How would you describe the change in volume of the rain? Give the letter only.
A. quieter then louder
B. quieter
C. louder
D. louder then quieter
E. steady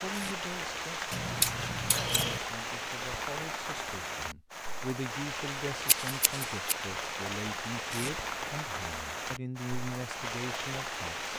E.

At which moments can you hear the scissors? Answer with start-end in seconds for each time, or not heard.
1.1-2.4, 5.8-6.8.